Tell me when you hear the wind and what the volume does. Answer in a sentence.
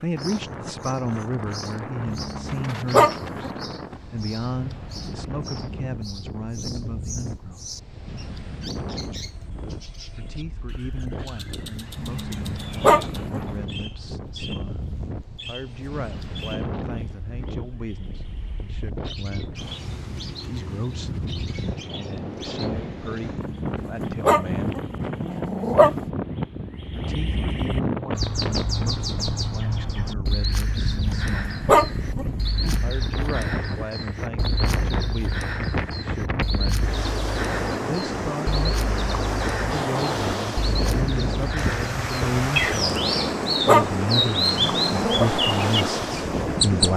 The wind can be heard from 0.0 to 46.9 s, getting louder.